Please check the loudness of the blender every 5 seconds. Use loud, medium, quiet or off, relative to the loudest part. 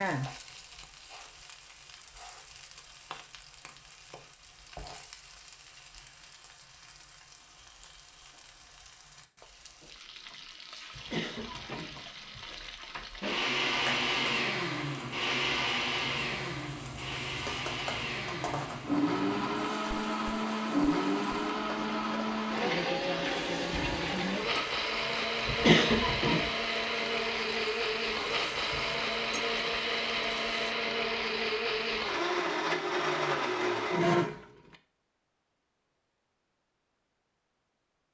off, off, loud, loud, loud, loud, loud, off.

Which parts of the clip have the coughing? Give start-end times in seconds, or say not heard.
10.9-12.4, 25.4-26.5.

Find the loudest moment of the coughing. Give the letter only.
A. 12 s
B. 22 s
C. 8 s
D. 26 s
D.